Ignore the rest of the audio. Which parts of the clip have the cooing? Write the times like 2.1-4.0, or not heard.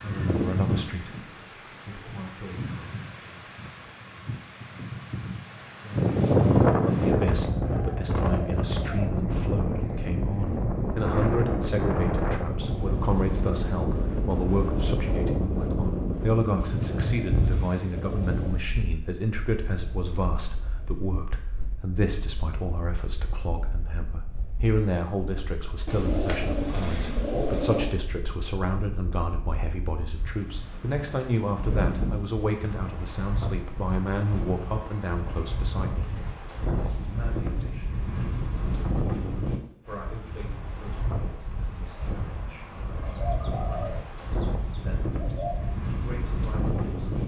7.7-9.1, 16.6-18.6, 25.9-27.9, 43.0-45.6.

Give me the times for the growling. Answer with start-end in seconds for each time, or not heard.
not heard.